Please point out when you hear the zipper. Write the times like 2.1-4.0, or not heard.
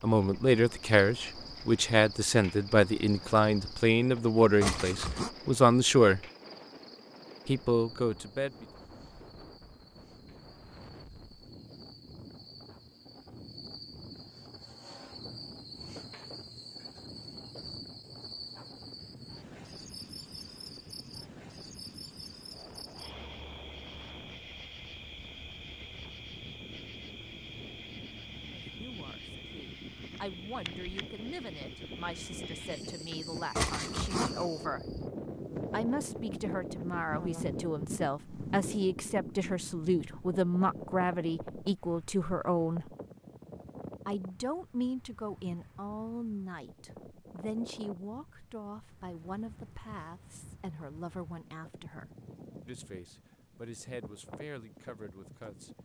4.6-5.3, 33.5-34.5.